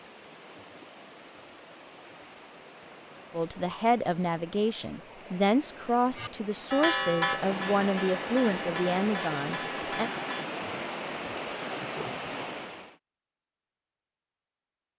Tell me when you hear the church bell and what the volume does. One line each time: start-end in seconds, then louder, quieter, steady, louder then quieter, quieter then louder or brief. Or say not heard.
6.2-10.5 quieter.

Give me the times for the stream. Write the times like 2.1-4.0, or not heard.
0.0-12.9.